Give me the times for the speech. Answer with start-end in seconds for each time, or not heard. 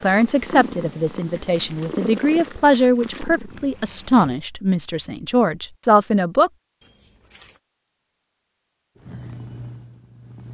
0.0-6.5.